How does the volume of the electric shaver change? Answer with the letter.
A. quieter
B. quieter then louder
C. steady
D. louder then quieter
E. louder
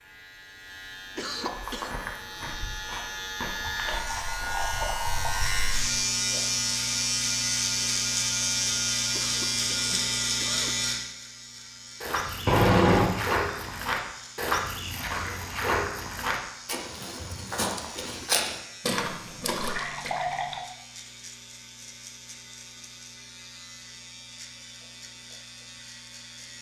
D.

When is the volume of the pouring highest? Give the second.
13 s.